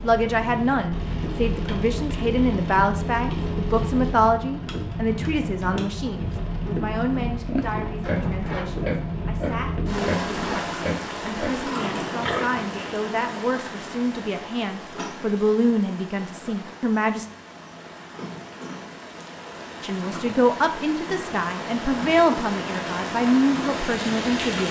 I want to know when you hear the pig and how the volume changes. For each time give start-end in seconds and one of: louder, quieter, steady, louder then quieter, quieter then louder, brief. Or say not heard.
7.3-13.1 steady.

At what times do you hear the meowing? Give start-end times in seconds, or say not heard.
not heard.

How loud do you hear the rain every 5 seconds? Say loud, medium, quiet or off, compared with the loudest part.
loud, loud, loud, medium, loud.